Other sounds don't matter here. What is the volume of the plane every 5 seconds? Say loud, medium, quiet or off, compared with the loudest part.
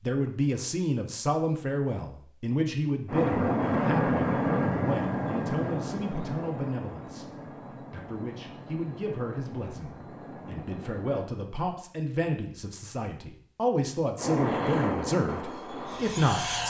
loud, medium, medium, medium.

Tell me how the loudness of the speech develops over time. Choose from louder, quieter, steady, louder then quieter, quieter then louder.
quieter then louder.